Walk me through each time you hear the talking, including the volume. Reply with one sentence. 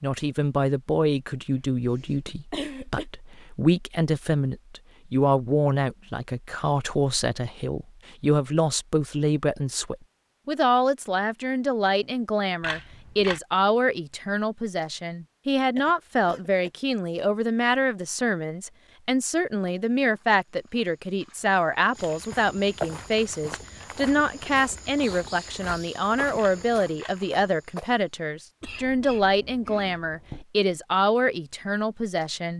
You can hear the talking from 0.0 to 32.5 s, at a steady volume.